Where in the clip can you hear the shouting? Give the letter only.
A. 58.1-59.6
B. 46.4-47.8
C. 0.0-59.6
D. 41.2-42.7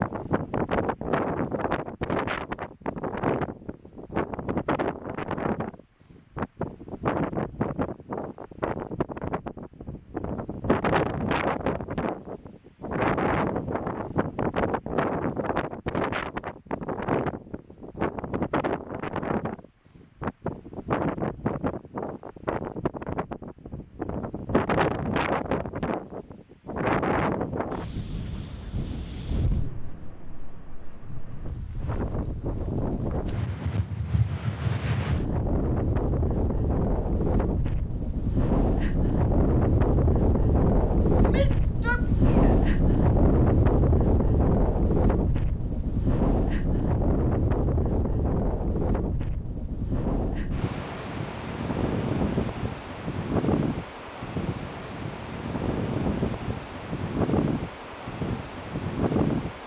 D.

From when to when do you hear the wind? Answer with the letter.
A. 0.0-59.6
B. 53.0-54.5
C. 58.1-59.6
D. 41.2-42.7
A.